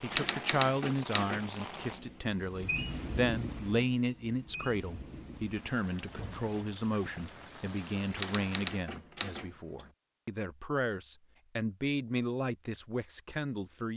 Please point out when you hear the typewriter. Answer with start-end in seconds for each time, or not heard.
0.1-1.9, 8.1-9.9.